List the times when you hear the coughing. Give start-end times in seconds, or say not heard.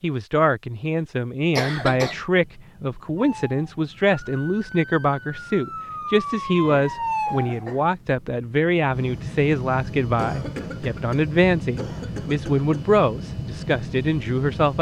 1.6-2.2, 6.6-7.9, 10.2-12.9.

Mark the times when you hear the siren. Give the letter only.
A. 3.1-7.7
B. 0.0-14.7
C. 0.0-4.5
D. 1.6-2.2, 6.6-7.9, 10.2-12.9
A.